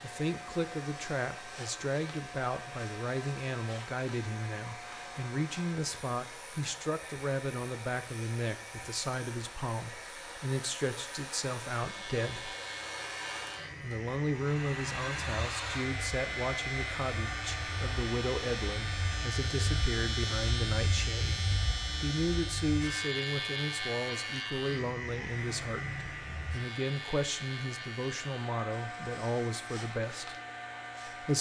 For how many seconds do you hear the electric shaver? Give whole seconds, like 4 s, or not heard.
31 s.